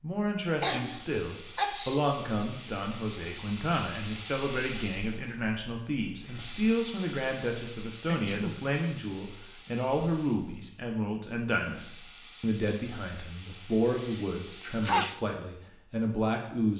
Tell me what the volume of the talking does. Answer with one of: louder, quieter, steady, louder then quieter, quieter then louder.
steady.